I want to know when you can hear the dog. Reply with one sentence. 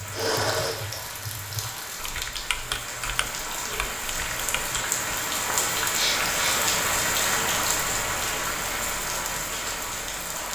The dog can't be heard in this clip.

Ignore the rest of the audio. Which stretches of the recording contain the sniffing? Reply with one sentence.
You can hear the sniffing from 0.1 to 0.8 s and from 5.9 to 6.6 s.